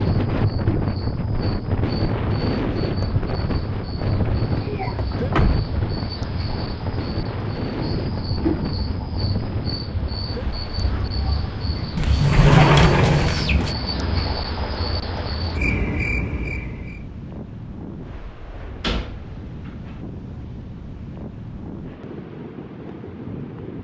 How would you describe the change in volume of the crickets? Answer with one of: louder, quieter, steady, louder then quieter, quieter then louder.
louder.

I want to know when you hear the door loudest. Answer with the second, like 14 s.
13 s.